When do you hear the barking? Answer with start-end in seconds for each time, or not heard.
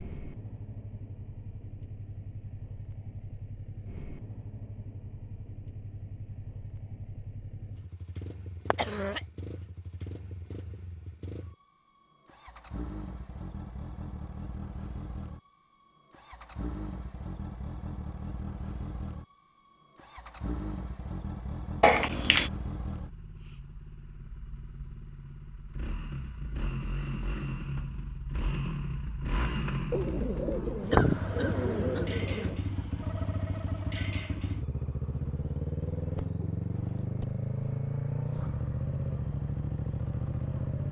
not heard.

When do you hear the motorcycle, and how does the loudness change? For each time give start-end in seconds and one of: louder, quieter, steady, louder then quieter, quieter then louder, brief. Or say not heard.
0.0-40.8 louder.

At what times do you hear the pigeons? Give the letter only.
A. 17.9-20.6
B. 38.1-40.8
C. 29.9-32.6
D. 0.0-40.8
C.